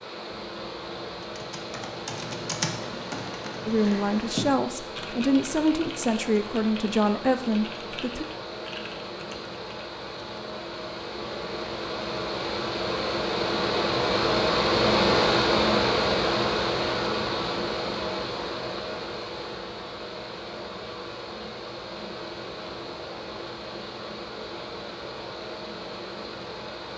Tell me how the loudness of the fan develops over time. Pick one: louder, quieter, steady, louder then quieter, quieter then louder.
louder then quieter.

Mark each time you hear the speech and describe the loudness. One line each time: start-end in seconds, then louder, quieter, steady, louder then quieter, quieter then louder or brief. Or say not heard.
3.6-8.2 steady.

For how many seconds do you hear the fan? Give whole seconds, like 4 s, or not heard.
27 s.